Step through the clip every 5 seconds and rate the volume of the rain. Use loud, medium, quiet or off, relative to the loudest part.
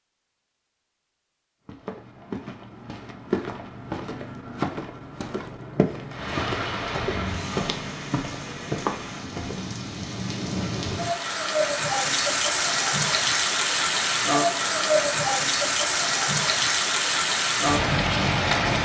off, medium, loud, loud.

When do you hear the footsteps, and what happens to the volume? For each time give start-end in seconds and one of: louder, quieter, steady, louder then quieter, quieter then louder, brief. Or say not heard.
1.6-9.8 steady.